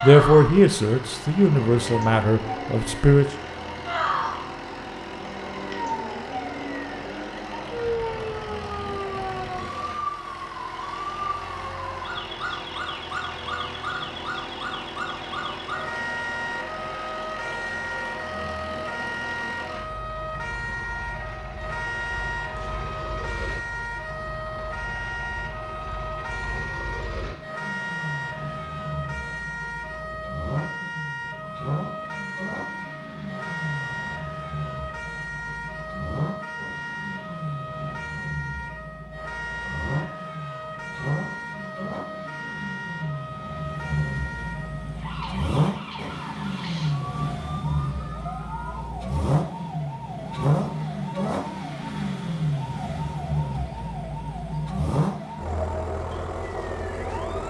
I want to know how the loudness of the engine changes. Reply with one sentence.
The volume of the engine goes up.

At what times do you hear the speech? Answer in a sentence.
The speech can be heard from 0.0 to 3.2 s.